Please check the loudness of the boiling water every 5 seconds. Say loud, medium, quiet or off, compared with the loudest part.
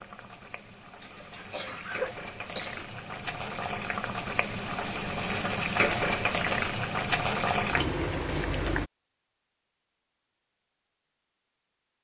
medium, loud, off.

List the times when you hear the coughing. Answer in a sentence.
The coughing can be heard from 1.0 to 2.9 s.